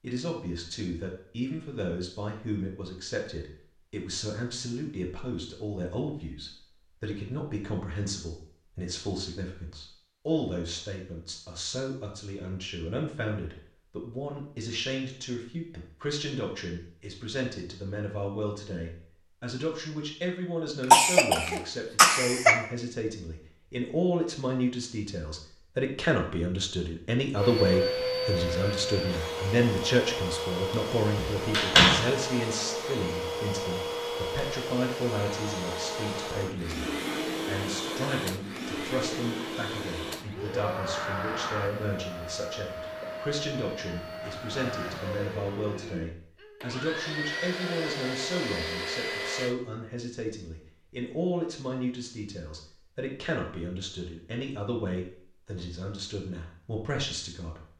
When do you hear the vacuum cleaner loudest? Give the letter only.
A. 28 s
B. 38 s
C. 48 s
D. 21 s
A.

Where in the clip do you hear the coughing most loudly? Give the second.
21 s.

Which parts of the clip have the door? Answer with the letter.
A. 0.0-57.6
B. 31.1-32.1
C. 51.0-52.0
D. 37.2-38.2
B.